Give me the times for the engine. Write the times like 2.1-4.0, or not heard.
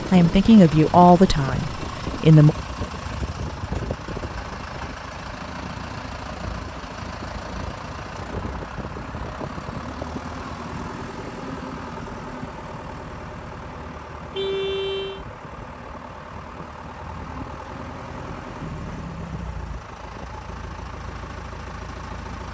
0.0-22.5.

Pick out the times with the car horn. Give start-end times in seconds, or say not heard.
14.3-15.2.